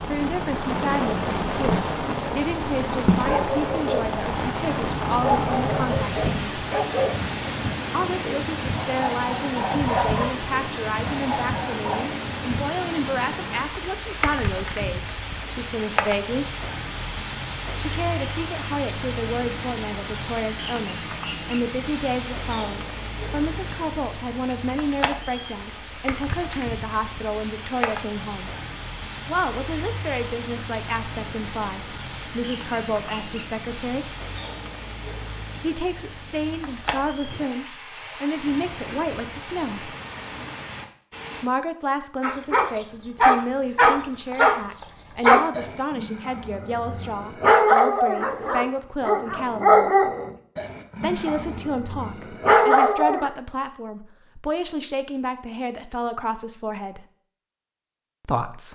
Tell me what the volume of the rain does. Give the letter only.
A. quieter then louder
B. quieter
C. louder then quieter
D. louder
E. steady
B.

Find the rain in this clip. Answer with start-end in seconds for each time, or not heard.
0.0-41.5.